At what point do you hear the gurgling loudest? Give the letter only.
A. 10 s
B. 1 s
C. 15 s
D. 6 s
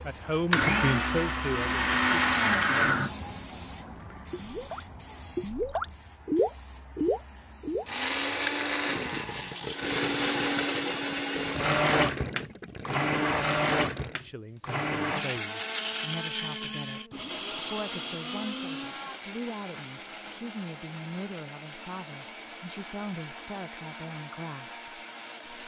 D.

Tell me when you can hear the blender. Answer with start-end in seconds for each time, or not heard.
0.0-3.1, 7.8-25.6.